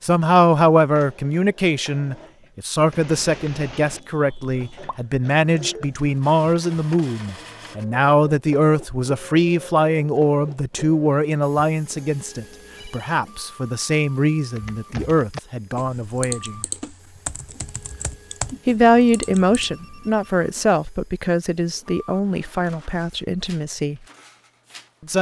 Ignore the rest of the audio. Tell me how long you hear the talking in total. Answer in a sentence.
The talking can be heard for 22 seconds in total.